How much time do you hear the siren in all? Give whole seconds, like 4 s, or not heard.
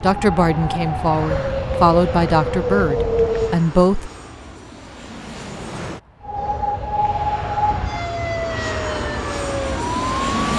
8 s.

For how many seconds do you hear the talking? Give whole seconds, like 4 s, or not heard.
4 s.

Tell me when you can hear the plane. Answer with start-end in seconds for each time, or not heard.
0.0-10.5.